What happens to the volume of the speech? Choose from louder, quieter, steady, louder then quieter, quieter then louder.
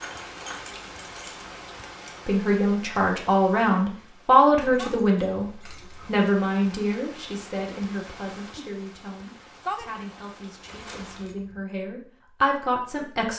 quieter then louder.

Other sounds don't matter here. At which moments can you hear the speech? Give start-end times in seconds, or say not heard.
2.2-13.3.